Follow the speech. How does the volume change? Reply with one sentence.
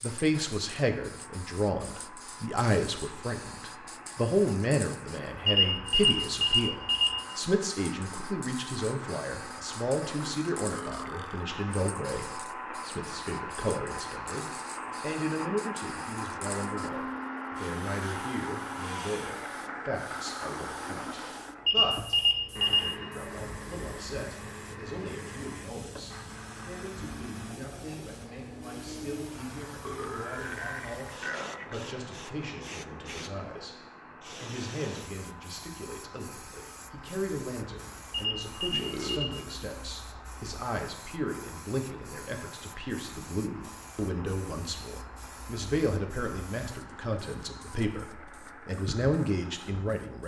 The loudness of the speech goes down, then up.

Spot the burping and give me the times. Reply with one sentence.
You can hear the burping from 10.7 to 11.4 s, from 29.8 to 31.8 s and from 38.7 to 39.2 s.